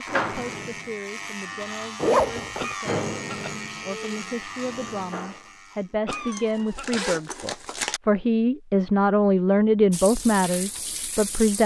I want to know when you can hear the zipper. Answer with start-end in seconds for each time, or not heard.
1.9-2.8, 6.1-8.0.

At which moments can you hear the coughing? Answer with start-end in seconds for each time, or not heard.
2.5-3.6, 6.0-7.1.